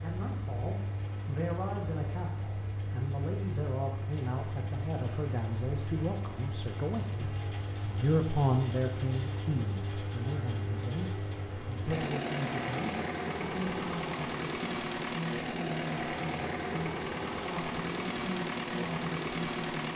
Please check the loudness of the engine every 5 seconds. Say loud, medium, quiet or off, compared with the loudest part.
medium, medium, loud, loud.